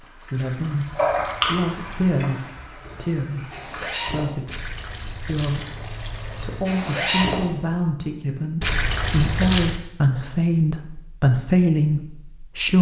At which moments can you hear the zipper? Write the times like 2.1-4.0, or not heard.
3.5-4.6, 6.7-7.7.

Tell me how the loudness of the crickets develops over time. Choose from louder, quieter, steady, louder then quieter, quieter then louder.
quieter.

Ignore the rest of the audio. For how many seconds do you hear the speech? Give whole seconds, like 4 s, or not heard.
13 s.